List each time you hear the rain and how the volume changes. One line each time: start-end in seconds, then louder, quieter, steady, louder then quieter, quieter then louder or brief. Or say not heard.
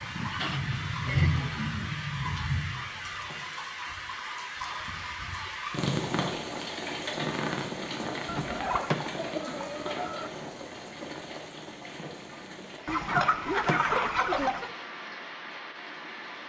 0.0-16.4 quieter.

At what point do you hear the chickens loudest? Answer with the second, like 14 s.
14 s.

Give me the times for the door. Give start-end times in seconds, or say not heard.
2.6-3.7, 8.2-9.3, 13.1-14.1.